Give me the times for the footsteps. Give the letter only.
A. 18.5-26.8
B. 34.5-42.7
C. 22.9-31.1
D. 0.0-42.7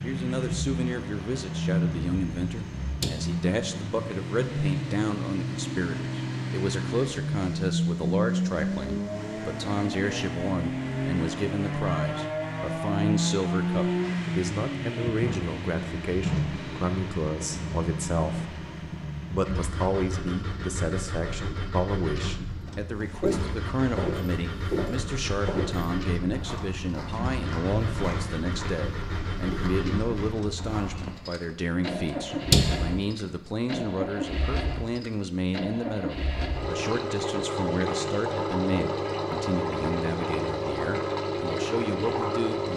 C.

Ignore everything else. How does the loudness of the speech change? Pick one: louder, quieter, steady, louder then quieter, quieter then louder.
steady.